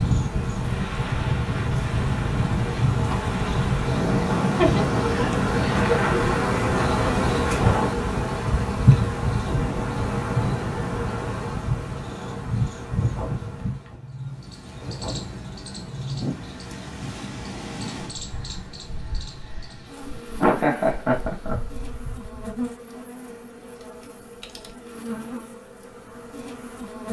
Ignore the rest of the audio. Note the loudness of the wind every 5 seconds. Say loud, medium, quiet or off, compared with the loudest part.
loud, loud, medium, medium, quiet, off.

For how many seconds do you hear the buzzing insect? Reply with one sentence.
The buzzing insect can be heard for 27 seconds in total.